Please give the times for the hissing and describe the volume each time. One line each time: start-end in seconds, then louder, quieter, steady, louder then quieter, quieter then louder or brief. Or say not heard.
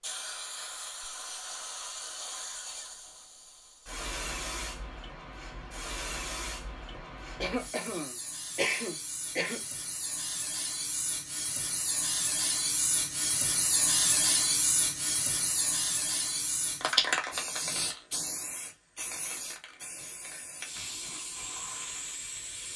0.0-22.7 louder then quieter.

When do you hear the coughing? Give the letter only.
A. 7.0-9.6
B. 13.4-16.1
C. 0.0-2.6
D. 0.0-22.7
A.